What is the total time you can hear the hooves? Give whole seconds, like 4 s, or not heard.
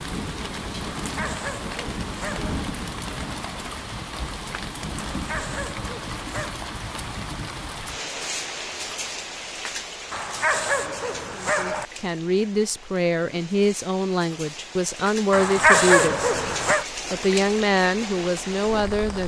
not heard.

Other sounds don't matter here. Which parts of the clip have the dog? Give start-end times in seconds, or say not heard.
1.0-2.6, 5.1-6.6, 10.1-11.8, 15.3-16.9.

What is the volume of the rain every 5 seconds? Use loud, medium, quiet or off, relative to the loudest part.
loud, loud, medium, loud.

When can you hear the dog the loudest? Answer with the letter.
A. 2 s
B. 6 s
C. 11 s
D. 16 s
D.